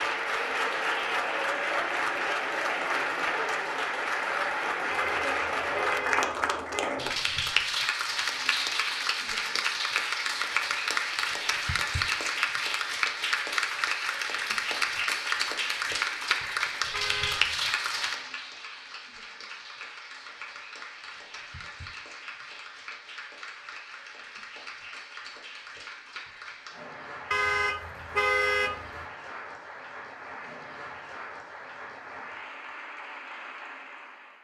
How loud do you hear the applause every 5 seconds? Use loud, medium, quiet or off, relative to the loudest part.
loud, loud, loud, loud, quiet, quiet, quiet.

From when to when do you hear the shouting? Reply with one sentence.
The shouting can't be heard in this clip.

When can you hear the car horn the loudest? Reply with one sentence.
The volume of the car horn peaks at 28 seconds.